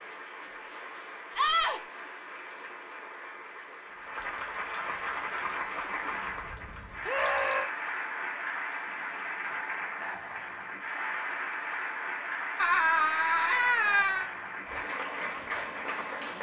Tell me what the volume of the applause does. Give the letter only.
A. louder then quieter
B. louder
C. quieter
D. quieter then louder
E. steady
B.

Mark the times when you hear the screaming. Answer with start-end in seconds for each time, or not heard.
1.4-1.8, 7.0-7.7, 12.6-14.3.